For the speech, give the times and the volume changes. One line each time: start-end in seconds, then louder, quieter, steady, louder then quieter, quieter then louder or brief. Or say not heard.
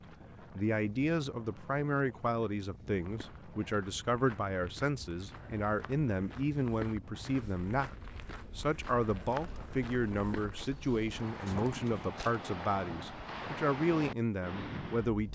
0.4-15.3 steady.